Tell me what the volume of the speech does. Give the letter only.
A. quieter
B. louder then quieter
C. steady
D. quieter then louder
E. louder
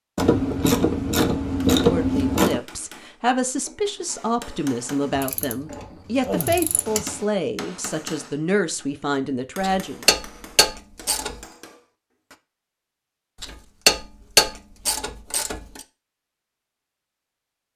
C.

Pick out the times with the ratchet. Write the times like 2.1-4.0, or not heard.
0.1-2.6, 5.2-7.1, 9.6-11.3, 13.4-15.8.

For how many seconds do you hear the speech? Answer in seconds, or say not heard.
8 s.